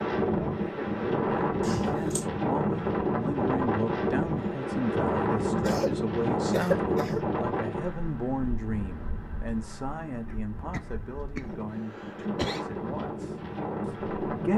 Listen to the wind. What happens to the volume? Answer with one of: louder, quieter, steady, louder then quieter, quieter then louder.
quieter then louder.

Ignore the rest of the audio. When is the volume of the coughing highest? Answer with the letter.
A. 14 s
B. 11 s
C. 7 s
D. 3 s
C.